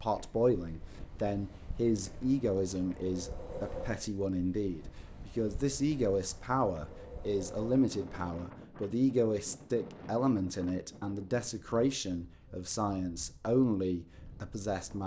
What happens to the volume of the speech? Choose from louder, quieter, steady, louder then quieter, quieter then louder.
steady.